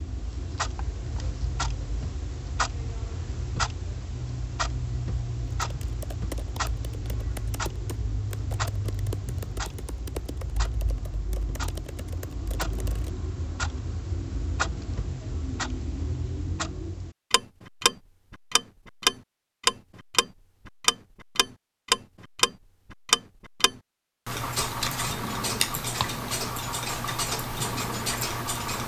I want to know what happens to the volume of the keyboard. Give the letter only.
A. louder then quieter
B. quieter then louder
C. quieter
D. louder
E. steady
E.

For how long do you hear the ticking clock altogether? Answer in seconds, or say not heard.
29 s.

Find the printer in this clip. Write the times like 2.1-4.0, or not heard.
not heard.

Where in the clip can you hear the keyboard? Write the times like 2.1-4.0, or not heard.
5.6-13.1.